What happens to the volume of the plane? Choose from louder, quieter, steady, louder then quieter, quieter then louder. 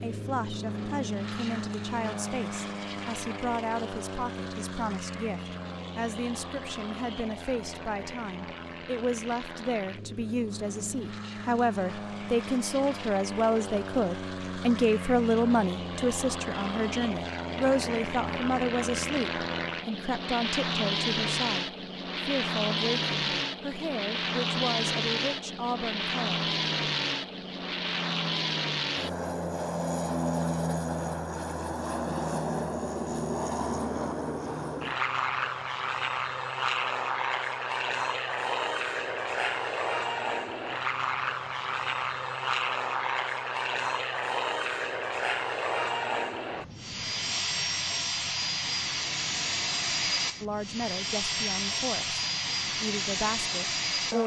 louder.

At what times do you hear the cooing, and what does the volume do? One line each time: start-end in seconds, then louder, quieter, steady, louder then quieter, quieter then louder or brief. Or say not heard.
not heard.